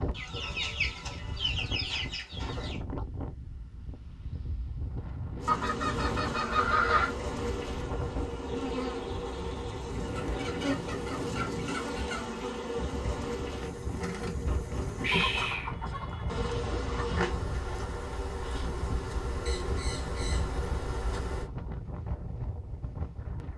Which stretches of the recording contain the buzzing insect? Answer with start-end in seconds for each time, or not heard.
5.4-21.5.